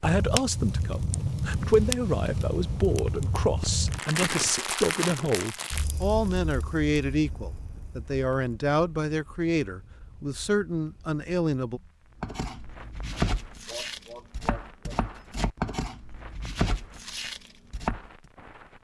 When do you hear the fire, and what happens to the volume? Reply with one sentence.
You can hear the fire from 0.0 to 18.7 s, getting quieter.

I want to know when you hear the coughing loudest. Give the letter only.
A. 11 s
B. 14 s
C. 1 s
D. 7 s
B.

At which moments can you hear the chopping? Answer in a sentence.
You can hear the chopping from 12.2 to 18.1 s.